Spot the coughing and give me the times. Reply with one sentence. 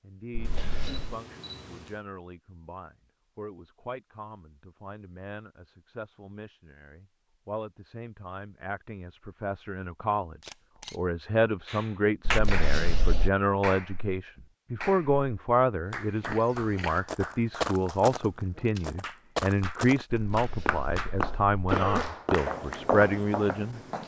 The coughing can be heard from 0.3 to 1.1 s, from 12.2 to 13.3 s and from 20.1 to 22.1 s.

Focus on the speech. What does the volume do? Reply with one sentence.
The loudness of the speech goes up.